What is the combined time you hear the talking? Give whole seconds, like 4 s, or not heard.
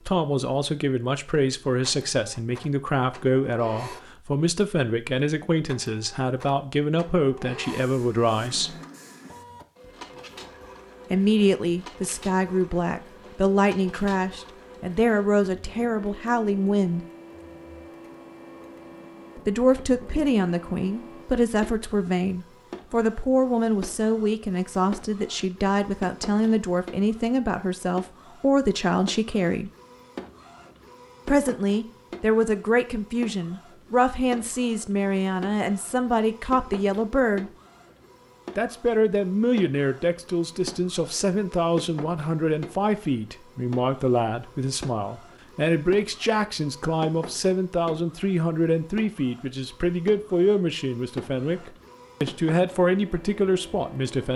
47 s.